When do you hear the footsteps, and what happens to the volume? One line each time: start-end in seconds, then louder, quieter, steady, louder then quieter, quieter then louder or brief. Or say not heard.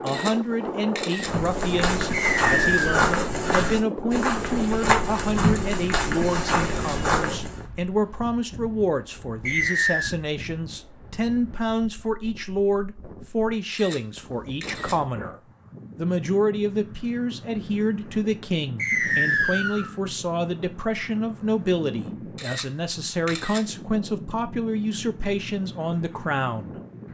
1.1-7.7 steady.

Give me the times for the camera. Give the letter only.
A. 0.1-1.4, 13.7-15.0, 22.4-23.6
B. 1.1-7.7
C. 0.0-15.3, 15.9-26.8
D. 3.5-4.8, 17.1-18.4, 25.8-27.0
A.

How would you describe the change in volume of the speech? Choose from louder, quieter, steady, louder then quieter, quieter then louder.
steady.